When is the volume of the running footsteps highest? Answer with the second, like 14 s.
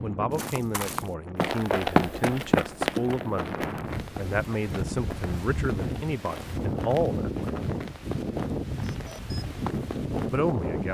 2 s.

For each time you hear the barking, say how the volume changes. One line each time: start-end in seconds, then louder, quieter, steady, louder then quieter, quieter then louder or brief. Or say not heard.
not heard.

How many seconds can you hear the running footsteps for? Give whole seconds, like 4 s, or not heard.
10 s.